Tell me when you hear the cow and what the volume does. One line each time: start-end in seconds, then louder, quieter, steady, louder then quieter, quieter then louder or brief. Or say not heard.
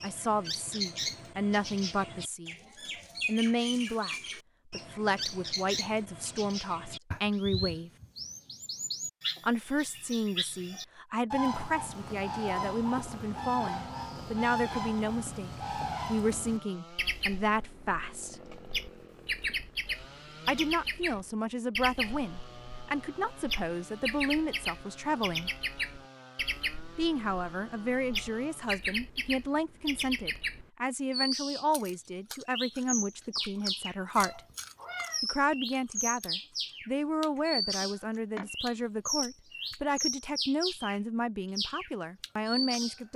not heard.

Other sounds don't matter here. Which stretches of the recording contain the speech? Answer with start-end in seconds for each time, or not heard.
0.0-2.5, 3.2-7.9, 9.4-18.4, 20.4-25.5, 26.9-34.4, 35.2-43.1.